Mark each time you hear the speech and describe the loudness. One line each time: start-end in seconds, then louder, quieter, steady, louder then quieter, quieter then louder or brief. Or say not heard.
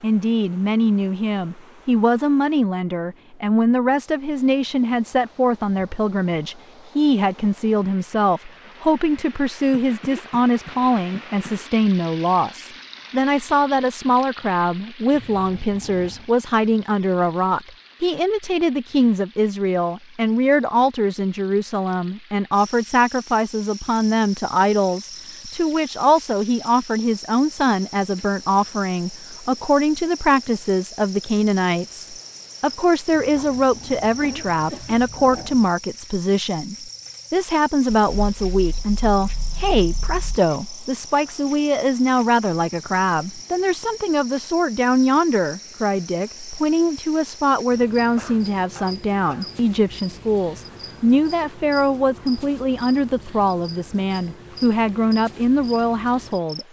0.0-56.6 steady.